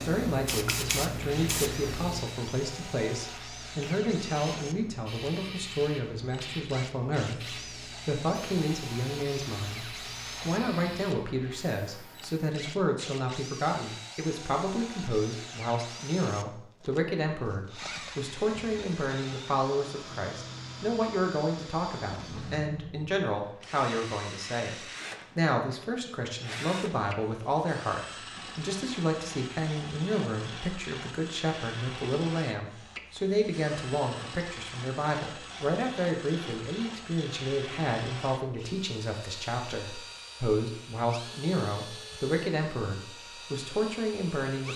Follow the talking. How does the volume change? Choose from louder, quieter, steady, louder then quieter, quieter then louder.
steady.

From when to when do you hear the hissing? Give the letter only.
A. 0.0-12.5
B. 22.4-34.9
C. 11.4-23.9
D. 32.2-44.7
A.